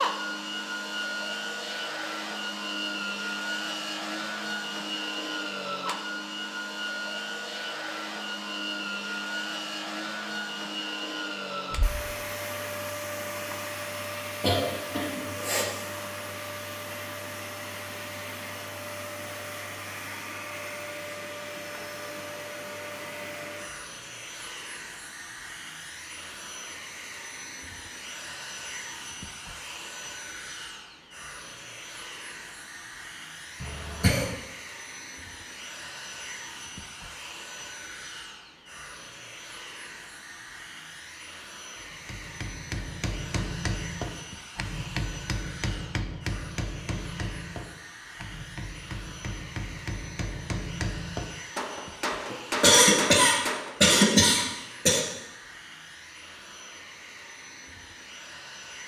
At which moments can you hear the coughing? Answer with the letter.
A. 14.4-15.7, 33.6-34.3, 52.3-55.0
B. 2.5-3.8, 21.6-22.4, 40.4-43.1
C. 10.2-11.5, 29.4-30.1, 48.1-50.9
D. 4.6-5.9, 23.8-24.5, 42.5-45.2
A.